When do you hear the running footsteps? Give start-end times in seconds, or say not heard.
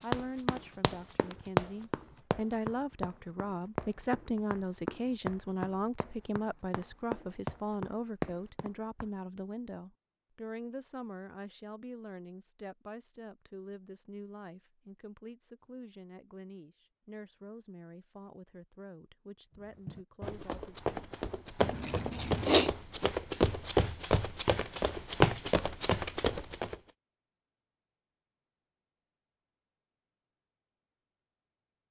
0.0-9.1, 19.9-26.8.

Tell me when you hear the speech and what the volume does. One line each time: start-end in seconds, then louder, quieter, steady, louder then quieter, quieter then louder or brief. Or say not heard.
0.0-20.8 quieter.